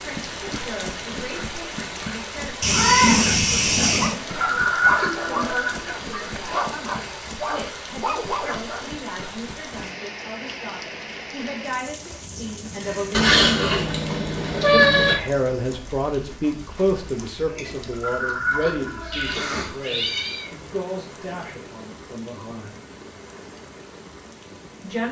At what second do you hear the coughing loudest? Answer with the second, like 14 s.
5 s.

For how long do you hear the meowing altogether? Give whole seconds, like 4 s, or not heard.
5 s.